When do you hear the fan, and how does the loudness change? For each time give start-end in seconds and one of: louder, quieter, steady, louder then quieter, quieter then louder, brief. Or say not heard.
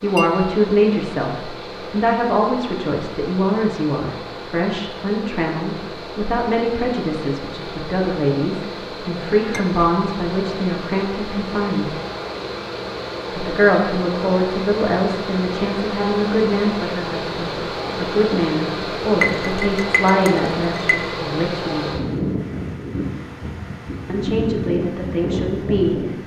0.0-26.2 louder.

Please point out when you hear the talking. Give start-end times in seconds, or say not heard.
0.0-11.9, 13.3-21.9, 24.1-25.9.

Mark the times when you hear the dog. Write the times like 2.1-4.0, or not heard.
not heard.